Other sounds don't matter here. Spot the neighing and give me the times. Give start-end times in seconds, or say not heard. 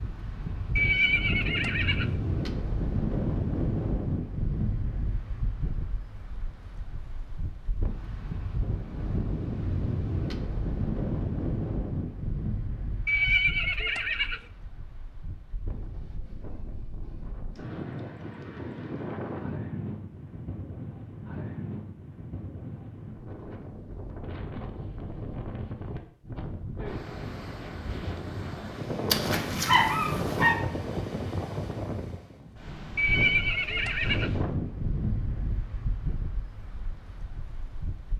0.8-2.1, 13.1-14.4, 33.0-34.3.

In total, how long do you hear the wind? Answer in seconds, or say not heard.
38 s.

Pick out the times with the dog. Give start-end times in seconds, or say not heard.
29.1-30.6.